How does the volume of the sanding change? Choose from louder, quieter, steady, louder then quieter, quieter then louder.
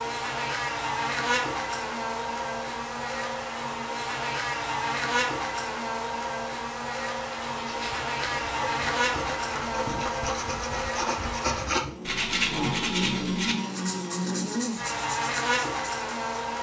louder then quieter.